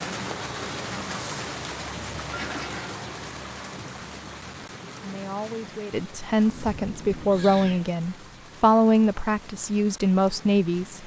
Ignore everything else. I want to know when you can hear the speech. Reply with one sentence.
You can hear the speech from 5.0 to 11.0 s.